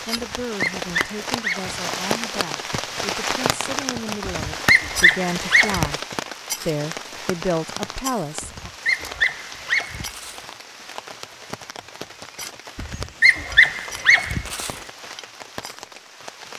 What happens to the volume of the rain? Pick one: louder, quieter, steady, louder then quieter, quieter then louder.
quieter.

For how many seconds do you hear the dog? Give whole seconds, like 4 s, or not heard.
7 s.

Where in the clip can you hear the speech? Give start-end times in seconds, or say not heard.
0.1-6.0, 6.7-8.7.